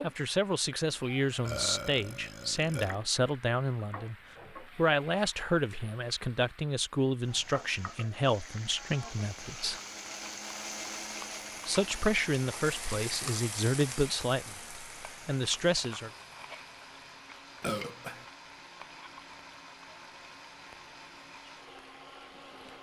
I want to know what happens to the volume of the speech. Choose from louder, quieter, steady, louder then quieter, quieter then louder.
steady.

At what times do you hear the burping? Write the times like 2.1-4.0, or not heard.
1.4-3.0, 9.3-9.8, 17.6-18.2.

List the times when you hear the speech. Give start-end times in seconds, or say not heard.
0.0-9.8, 11.7-16.1.